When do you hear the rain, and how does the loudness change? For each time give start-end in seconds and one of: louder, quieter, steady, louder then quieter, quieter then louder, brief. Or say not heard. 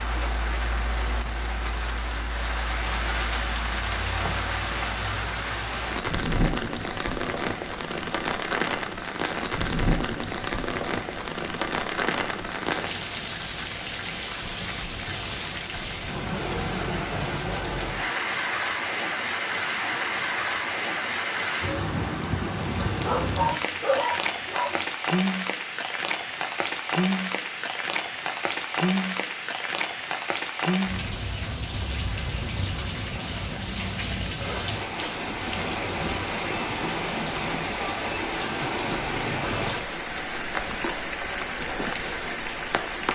0.0-43.1 steady.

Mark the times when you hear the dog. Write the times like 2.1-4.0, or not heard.
23.1-24.8.